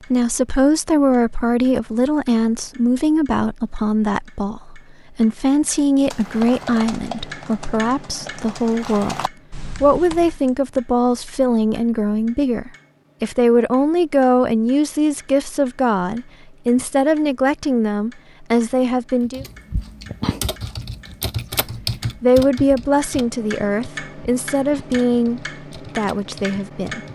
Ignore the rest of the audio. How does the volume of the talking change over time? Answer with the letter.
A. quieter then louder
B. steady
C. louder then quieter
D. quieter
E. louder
B.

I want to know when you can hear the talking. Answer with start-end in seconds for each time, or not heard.
0.1-19.4, 22.2-27.0.